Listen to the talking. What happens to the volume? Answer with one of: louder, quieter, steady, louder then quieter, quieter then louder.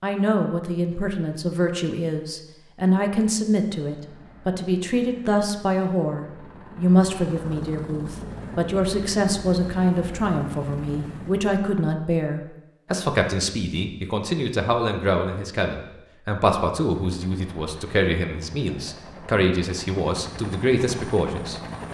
steady.